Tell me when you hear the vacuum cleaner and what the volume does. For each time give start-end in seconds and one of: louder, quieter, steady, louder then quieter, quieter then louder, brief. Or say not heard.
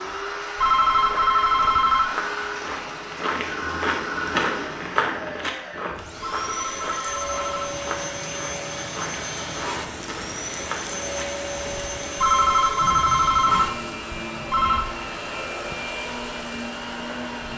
0.0-17.5 steady.